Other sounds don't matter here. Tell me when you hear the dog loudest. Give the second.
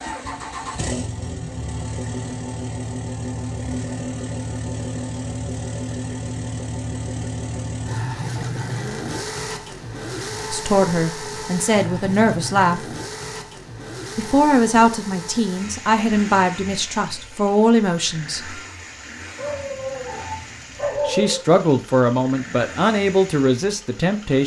21 s.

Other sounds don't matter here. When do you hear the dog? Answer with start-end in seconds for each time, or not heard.
19.4-21.4.